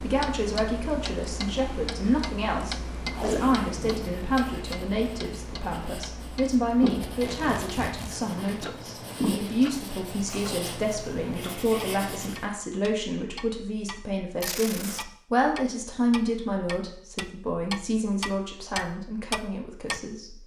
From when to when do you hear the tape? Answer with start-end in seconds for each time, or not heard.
3.1-4.0, 7.0-8.2, 14.4-15.1.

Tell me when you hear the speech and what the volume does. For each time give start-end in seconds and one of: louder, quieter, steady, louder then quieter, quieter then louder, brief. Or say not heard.
0.0-20.4 steady.